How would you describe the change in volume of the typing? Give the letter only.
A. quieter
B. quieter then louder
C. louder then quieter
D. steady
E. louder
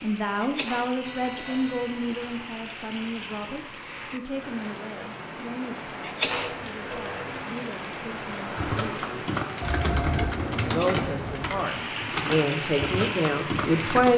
D.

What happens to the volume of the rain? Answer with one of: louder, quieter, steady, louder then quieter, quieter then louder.
louder.